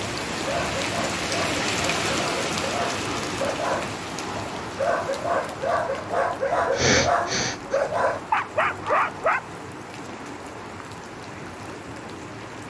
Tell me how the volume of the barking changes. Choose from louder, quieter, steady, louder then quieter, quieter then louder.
louder.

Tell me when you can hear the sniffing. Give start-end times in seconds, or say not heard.
6.5-7.8.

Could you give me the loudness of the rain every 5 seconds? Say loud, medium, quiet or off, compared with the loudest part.
loud, medium, medium.